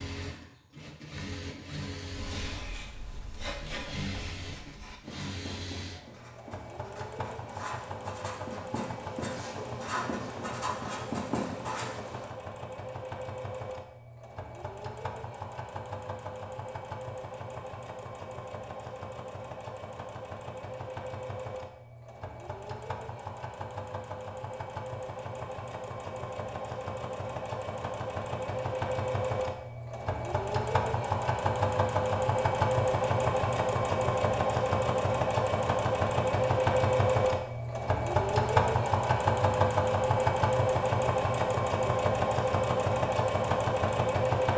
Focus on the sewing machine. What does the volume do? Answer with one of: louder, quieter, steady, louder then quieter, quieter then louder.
louder.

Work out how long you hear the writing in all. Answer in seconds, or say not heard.
10 s.